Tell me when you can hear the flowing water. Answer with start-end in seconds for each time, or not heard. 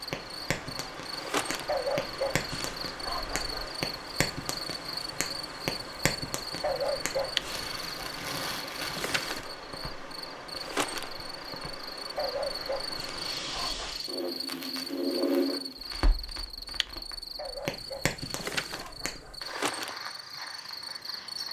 0.0-13.4.